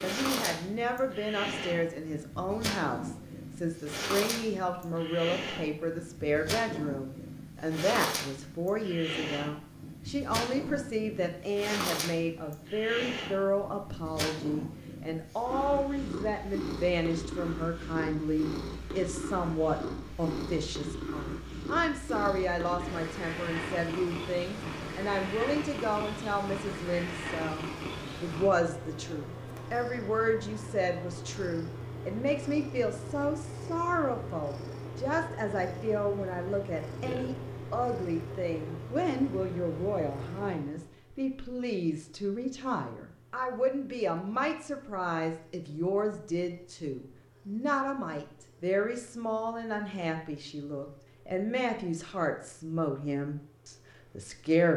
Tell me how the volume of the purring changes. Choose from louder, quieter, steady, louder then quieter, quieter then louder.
quieter.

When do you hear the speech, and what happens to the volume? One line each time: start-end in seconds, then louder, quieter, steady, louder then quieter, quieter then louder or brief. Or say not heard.
0.0-54.7 steady.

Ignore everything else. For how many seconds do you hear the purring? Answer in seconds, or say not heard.
55 s.